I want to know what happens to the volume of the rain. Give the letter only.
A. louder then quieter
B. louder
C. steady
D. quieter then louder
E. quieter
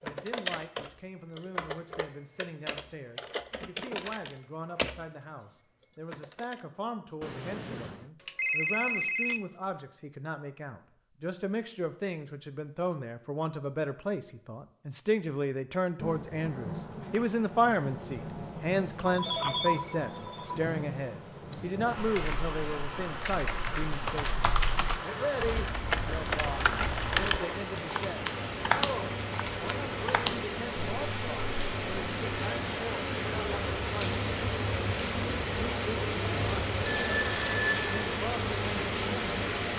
B.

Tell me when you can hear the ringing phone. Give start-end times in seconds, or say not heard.
7.2-9.4, 19.1-20.6, 36.8-38.0.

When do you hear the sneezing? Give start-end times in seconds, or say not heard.
not heard.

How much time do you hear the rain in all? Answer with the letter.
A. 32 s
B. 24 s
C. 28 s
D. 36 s
B.